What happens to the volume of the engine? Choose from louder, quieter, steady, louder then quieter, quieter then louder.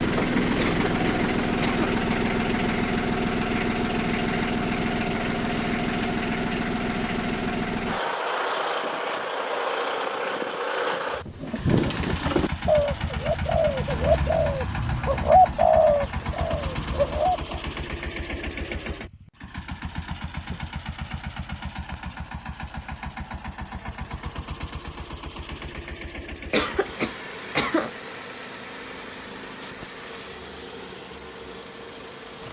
quieter.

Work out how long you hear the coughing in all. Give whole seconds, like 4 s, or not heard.
3 s.